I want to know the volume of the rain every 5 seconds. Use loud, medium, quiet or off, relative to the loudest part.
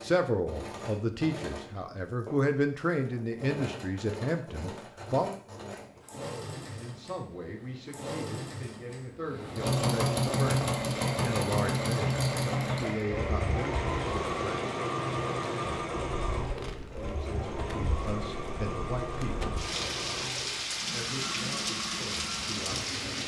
off, off, medium, medium, loud.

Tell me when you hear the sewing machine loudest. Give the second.
10 s.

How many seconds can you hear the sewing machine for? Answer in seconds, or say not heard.
23 s.